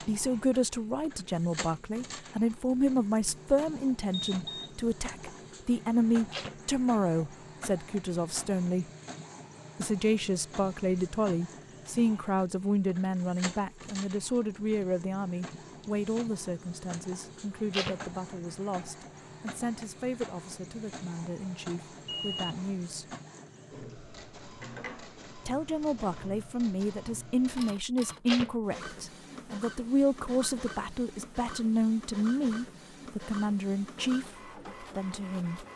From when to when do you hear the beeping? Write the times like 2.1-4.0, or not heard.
4.1-4.7, 22.1-22.8.